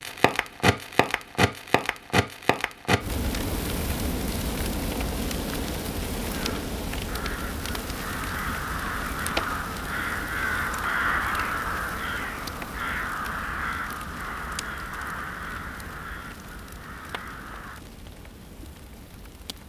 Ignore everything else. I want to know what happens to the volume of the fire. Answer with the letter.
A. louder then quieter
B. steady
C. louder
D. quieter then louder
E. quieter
E.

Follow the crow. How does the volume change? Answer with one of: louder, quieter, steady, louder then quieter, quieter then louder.
louder then quieter.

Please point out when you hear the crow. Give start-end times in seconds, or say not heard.
6.2-17.9.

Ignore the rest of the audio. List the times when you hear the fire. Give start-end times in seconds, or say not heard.
0.0-19.6.